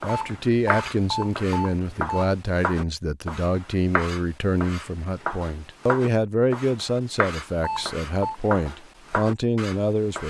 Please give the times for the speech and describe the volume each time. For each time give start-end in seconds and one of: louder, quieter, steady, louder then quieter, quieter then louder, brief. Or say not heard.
0.0-10.2 steady.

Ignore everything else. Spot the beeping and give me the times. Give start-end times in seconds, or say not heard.
0.1-2.1, 7.6-8.3.